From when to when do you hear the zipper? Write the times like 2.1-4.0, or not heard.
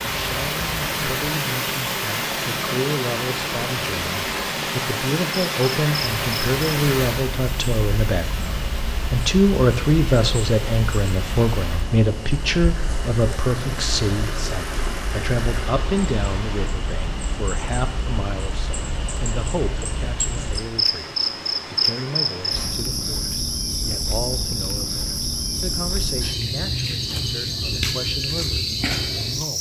not heard.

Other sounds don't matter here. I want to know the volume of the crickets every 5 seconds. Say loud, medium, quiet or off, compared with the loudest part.
off, medium, medium, medium, loud, loud.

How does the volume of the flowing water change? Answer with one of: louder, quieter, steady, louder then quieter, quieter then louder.
quieter.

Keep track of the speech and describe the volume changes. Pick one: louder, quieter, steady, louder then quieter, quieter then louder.
louder then quieter.